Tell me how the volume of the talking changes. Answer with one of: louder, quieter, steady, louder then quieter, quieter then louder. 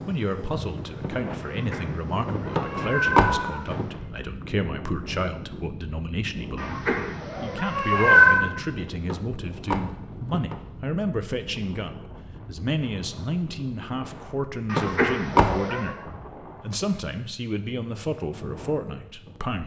steady.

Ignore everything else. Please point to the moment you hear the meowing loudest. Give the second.
8 s.